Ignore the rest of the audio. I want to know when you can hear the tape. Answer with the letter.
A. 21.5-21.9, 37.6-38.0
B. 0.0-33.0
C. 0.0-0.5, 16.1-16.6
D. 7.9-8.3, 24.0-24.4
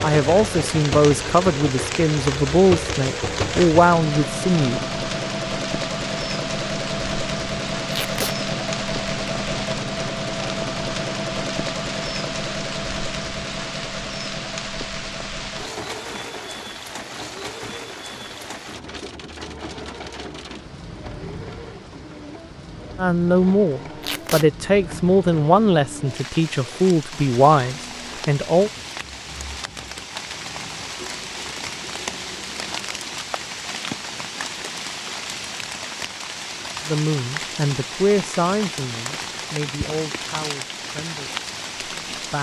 D.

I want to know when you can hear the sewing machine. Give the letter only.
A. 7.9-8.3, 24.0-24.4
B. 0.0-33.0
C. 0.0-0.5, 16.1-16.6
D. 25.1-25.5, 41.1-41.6
B.